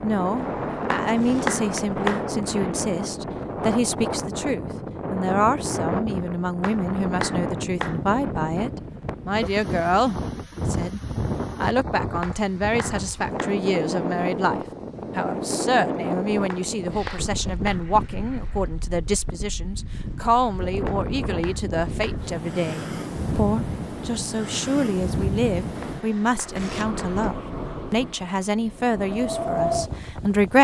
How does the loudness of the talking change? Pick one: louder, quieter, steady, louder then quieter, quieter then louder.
steady.